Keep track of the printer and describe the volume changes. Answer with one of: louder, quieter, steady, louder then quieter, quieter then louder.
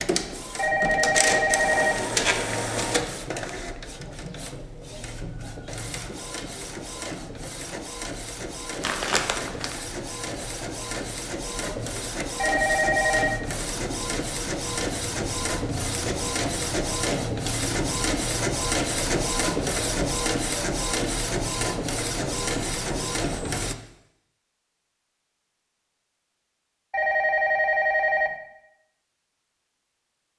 quieter then louder.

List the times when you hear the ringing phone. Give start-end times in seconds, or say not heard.
0.6-2.0, 12.3-13.4, 26.9-28.4.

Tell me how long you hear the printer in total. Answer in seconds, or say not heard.
24 s.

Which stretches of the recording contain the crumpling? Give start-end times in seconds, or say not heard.
8.8-9.8.